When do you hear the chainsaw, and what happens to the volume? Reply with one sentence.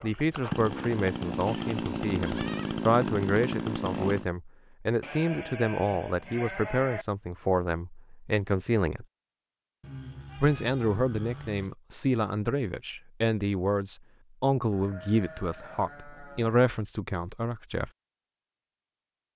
The chainsaw can be heard from 0.0 to 4.2 s, at a steady volume.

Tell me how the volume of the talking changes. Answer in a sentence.
The volume of the talking stays about the same.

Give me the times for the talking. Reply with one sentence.
You can hear the talking from 0.0 to 9.1 s and from 10.4 to 17.9 s.